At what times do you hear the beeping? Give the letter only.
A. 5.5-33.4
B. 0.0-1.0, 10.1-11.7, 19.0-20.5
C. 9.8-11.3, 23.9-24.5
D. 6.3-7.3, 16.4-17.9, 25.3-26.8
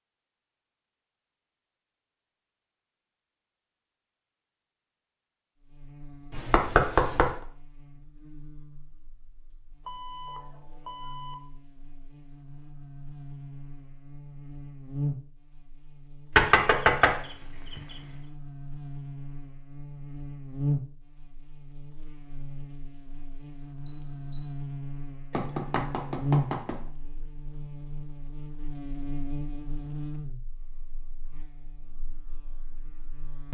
C.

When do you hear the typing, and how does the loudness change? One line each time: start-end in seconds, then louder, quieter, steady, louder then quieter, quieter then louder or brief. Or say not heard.
not heard.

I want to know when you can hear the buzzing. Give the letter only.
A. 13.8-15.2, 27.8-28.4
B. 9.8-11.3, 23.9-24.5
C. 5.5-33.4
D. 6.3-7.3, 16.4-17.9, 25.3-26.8
C.